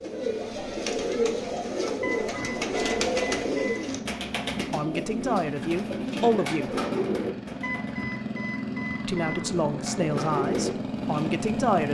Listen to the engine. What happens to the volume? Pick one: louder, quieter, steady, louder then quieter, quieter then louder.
louder.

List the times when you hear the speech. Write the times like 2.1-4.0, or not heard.
4.7-6.8, 9.1-11.8.